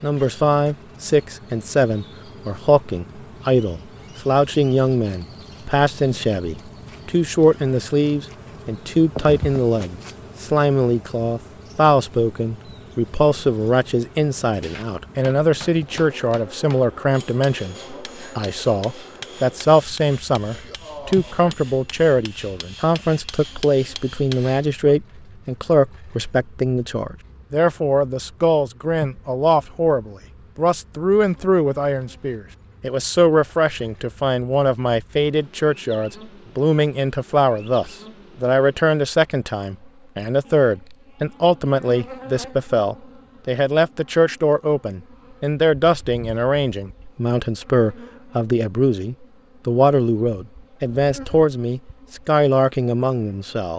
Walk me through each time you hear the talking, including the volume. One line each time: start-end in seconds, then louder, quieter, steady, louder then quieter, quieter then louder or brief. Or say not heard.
0.0-53.7 steady.